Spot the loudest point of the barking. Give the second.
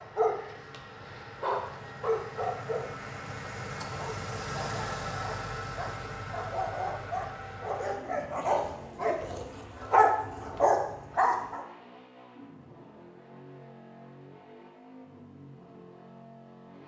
10 s.